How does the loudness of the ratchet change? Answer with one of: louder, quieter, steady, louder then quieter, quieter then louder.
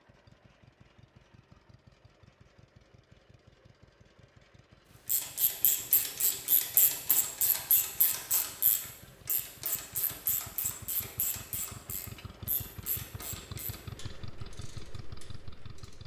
quieter.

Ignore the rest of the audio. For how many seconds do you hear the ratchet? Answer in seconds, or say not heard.
11 s.